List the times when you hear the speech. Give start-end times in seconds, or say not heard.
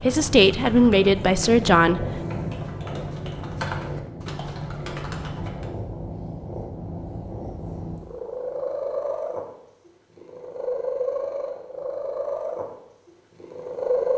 0.0-2.2.